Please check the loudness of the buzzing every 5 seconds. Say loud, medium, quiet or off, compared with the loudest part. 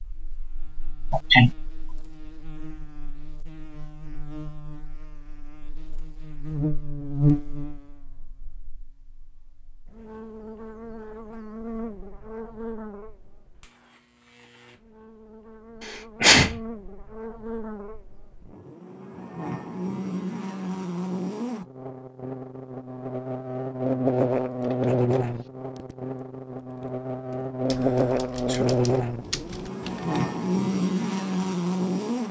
quiet, medium, quiet, quiet, loud, loud, loud.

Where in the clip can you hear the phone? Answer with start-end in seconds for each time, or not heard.
not heard.